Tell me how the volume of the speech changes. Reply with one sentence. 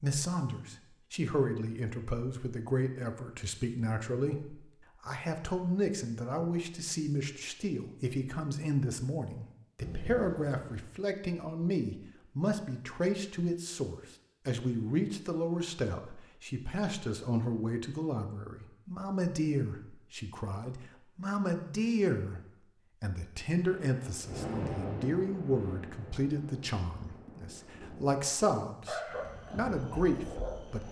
The loudness of the speech stays about the same.